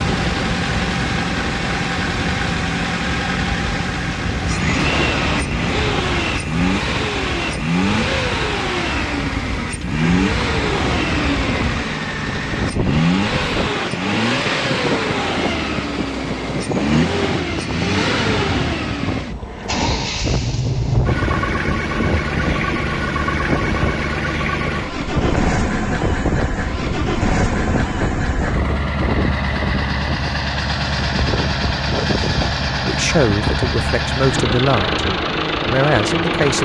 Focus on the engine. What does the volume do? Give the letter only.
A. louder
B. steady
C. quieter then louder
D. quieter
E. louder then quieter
B.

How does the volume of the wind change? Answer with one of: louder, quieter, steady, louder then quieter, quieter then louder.
steady.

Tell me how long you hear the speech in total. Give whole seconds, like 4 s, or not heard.
3 s.